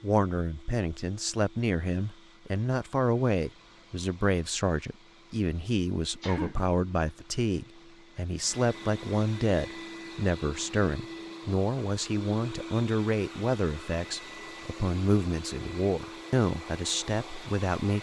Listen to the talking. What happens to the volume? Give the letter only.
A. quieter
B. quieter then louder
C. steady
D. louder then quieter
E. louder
C.